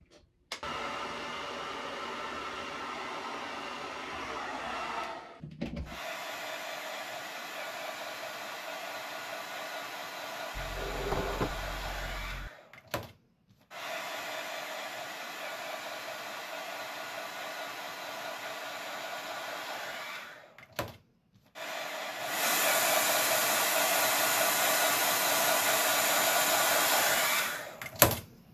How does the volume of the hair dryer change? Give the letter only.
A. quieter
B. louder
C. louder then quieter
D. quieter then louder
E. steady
B.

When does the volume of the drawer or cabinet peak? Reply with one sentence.
The volume of the drawer or cabinet peaks at 11 seconds.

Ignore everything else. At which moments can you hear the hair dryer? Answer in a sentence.
The hair dryer can be heard from 0.0 to 28.2 s.